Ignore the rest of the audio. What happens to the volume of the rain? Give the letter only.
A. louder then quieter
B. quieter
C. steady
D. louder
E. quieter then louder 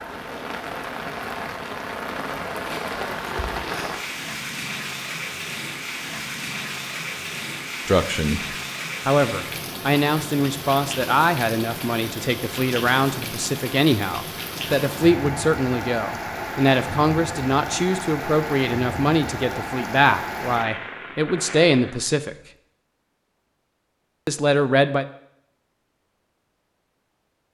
C.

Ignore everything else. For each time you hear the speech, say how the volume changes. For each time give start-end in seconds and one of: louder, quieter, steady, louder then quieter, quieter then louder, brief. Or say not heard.
7.8-22.4 steady
24.2-25.1 brief.